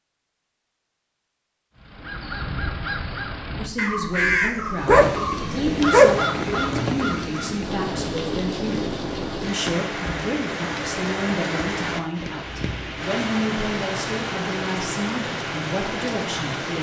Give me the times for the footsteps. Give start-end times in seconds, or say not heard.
not heard.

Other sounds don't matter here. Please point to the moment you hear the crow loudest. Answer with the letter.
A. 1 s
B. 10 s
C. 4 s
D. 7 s
C.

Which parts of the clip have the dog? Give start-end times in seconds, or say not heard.
4.8-6.2.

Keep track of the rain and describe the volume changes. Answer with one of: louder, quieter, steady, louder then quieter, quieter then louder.
steady.